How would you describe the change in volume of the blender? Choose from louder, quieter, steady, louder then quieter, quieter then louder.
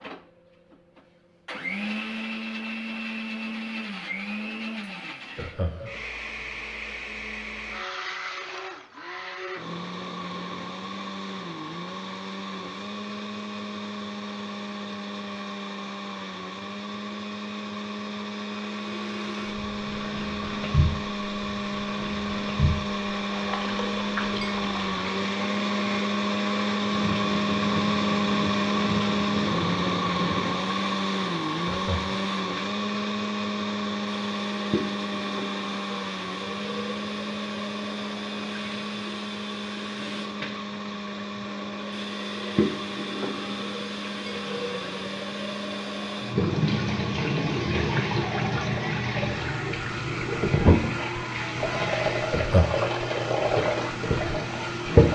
louder then quieter.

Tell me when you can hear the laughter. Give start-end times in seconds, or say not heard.
5.3-6.0, 31.6-32.3, 52.3-53.0.